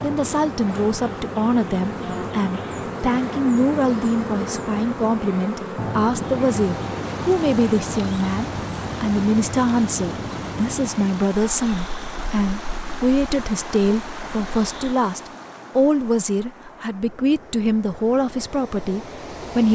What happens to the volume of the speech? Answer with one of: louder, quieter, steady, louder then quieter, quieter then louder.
steady.